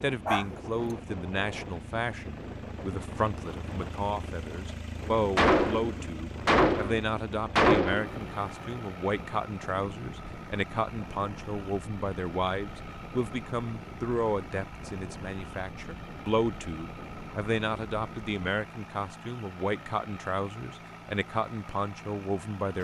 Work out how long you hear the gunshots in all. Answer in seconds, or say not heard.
3 s.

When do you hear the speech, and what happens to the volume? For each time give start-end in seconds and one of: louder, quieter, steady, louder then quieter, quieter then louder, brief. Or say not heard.
0.0-22.8 steady.